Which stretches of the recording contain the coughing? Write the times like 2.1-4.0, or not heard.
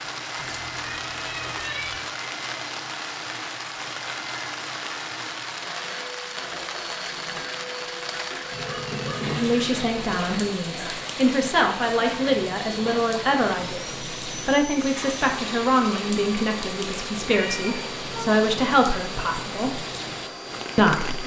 not heard.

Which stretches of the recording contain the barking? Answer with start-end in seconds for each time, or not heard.
not heard.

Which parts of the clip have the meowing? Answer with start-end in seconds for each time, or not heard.
0.3-2.0, 8.5-10.3, 17.4-18.3.